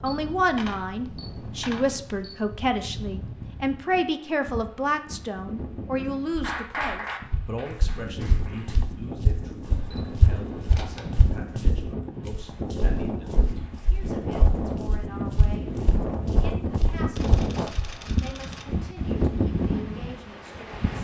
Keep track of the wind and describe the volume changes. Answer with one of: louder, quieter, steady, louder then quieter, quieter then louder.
louder.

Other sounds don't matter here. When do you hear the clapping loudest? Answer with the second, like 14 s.
7 s.